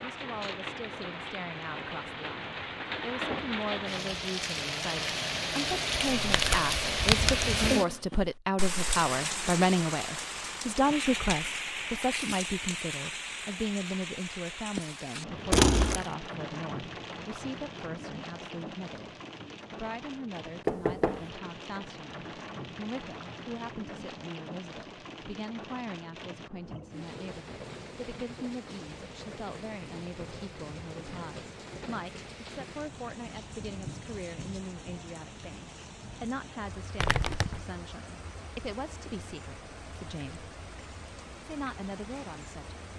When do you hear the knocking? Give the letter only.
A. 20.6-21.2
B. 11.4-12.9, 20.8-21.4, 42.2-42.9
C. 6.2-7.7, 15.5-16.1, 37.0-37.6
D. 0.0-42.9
A.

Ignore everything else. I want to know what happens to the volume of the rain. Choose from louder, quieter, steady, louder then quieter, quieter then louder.
quieter.